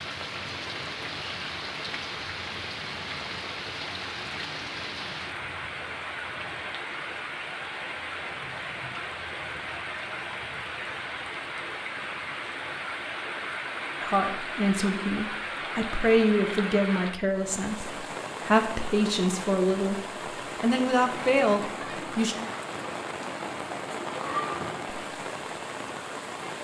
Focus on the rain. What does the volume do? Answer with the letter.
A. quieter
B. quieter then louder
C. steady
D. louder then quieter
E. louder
C.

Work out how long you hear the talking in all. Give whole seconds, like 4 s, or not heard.
8 s.